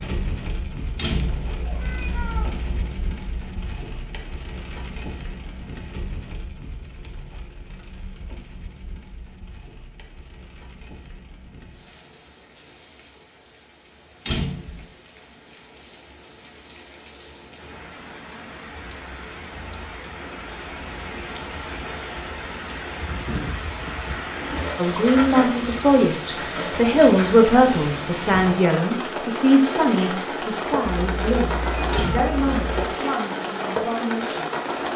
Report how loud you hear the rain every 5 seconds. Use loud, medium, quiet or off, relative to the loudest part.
medium, quiet, quiet, quiet, medium, loud, loud.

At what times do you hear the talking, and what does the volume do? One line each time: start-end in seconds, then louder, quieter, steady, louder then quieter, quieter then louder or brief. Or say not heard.
24.8-34.7 quieter.